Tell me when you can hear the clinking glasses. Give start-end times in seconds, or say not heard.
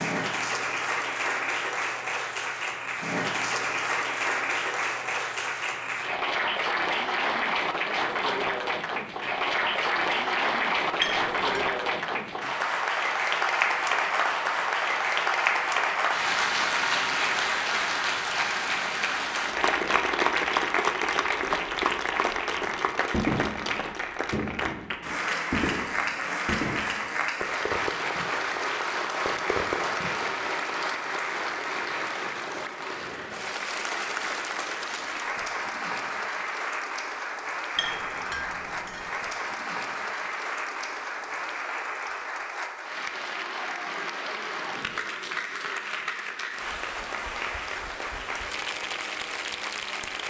11.0-11.7, 37.8-39.1.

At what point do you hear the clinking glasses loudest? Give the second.
11 s.